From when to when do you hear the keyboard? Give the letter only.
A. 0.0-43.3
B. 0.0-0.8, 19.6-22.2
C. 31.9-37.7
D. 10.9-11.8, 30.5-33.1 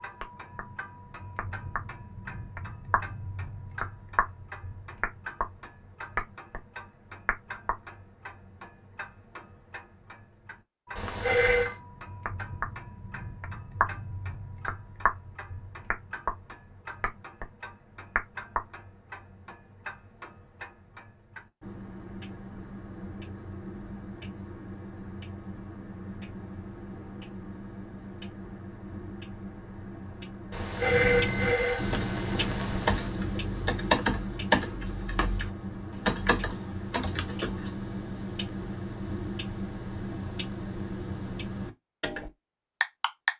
C.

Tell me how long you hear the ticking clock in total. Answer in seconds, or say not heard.
43 s.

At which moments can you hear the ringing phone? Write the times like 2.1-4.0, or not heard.
10.9-11.8, 30.5-33.1.